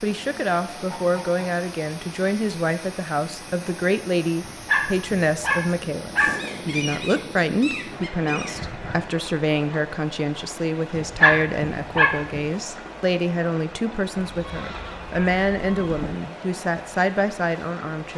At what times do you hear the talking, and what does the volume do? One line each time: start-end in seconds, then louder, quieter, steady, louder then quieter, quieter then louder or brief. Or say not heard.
0.0-18.1 steady.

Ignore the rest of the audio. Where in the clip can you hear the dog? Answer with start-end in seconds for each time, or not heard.
4.5-6.3, 10.9-12.4.